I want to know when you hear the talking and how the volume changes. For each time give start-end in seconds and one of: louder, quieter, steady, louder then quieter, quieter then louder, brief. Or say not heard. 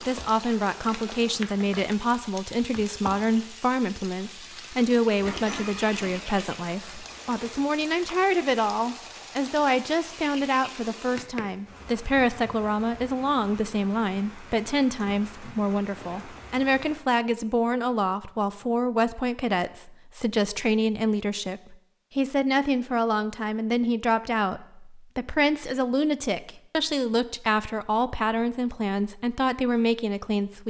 0.0-30.6 steady.